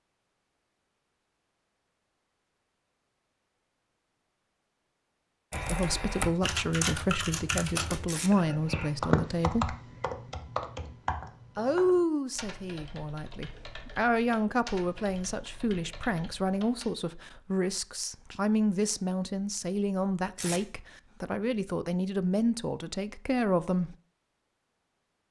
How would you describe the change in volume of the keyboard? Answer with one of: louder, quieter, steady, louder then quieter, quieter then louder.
quieter.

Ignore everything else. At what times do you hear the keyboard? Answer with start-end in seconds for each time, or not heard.
5.5-16.9.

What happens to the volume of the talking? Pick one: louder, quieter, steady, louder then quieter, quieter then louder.
steady.